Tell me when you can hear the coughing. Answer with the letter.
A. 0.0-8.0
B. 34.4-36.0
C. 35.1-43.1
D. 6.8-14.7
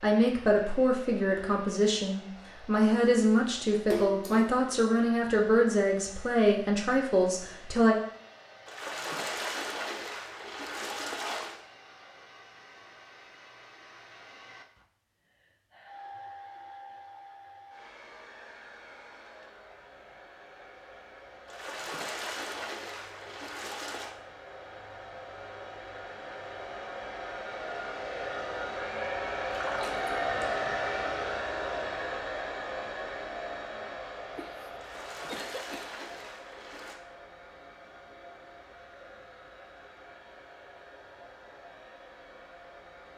B.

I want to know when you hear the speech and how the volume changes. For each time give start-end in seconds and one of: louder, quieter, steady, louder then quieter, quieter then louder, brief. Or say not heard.
0.0-8.0 steady.